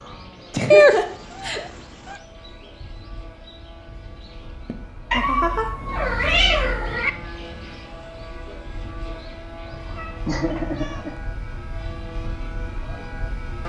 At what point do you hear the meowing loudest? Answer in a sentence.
The loudest moment of the meowing is at 1 second.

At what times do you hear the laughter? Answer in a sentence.
You can hear the laughter from 0.5 to 1.6 s, from 4.7 to 5.7 s and from 10.2 to 11.2 s.